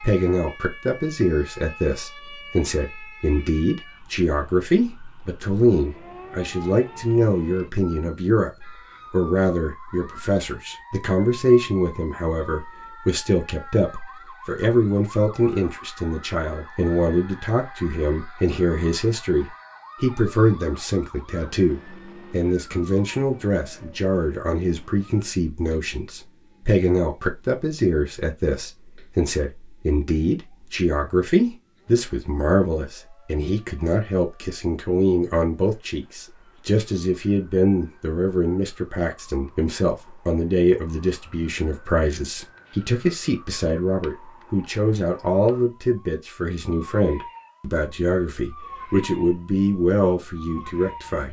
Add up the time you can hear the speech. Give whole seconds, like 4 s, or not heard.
51 s.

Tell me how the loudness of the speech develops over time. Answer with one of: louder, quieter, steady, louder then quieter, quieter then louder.
steady.